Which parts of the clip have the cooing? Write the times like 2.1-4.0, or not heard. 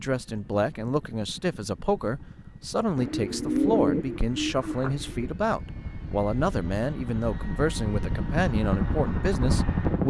3.0-5.3.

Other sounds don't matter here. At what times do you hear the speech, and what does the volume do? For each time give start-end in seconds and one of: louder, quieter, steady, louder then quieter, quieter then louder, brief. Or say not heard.
0.0-10.0 steady.